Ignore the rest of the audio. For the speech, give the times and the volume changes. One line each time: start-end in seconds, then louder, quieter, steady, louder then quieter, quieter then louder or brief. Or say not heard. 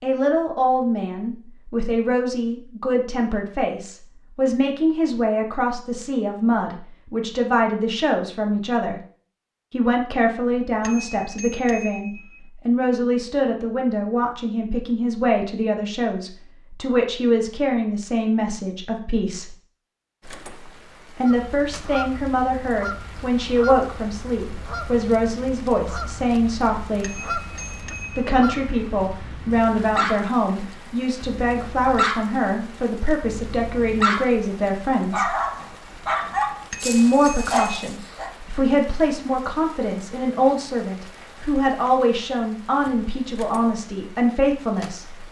0.0-8.9 steady
9.7-19.6 steady
21.1-27.1 steady
28.1-35.4 steady
36.8-45.2 steady.